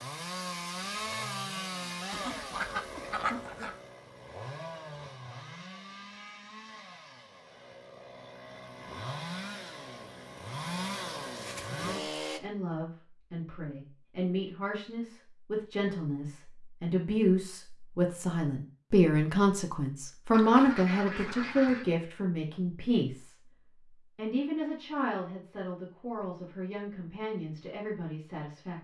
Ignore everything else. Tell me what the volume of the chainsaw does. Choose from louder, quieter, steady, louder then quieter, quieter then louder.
quieter then louder.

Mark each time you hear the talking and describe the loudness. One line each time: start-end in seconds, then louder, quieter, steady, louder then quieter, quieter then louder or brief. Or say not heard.
11.8-28.7 louder then quieter.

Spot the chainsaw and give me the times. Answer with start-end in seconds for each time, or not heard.
0.0-12.4.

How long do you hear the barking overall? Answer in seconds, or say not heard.
not heard.